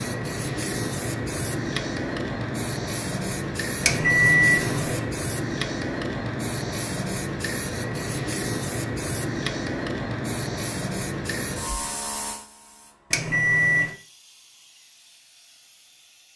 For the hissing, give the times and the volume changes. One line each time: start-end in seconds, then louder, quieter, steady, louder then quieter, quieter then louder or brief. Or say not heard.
0.0-16.3 quieter.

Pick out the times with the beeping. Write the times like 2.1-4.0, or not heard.
3.8-5.1, 13.1-13.9.